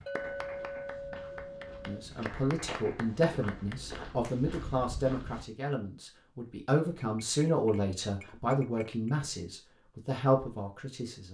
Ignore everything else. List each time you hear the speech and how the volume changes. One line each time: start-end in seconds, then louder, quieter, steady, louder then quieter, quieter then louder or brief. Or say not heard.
1.9-11.3 steady.